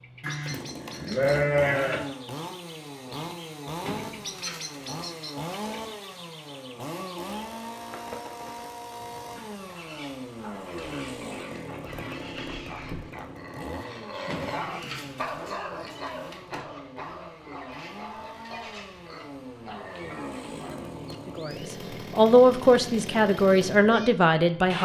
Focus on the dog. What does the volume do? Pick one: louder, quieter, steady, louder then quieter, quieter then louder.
louder then quieter.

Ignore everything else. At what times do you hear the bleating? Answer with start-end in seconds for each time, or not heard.
0.2-2.0.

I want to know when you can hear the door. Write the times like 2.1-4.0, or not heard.
3.8-5.0, 14.2-16.7.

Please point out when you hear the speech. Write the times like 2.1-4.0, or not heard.
21.2-24.7.